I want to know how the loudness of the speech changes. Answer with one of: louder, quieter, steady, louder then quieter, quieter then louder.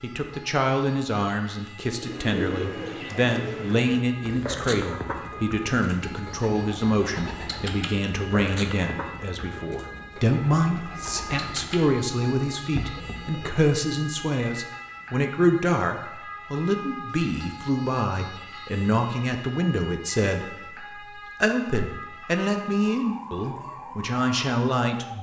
steady.